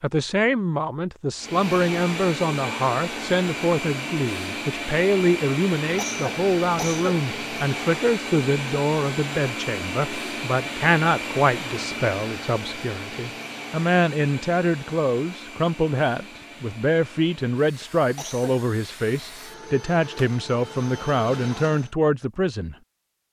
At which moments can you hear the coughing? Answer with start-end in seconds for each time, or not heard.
6.0-7.2, 18.1-18.6.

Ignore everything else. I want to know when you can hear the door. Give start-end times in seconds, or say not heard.
not heard.